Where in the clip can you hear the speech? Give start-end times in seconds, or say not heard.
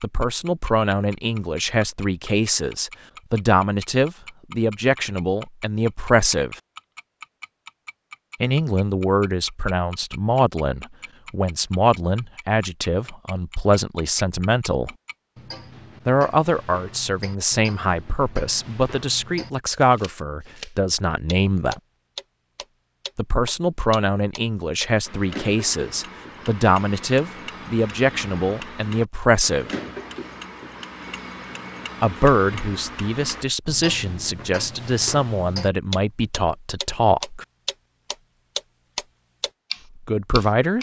0.0-6.5, 8.4-14.9, 16.1-21.8, 23.1-29.8, 32.0-37.5, 40.0-40.7.